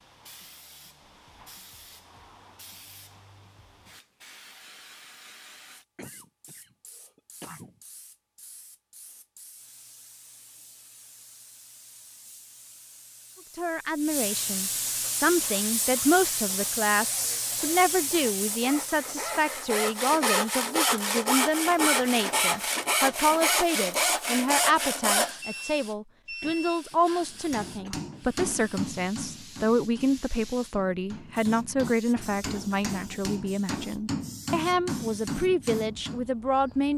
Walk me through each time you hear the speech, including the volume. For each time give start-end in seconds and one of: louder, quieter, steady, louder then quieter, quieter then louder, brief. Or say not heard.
13.6-36.9 steady.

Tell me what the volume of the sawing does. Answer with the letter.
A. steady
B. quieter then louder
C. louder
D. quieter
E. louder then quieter
C.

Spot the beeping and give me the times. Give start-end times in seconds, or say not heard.
25.4-26.8.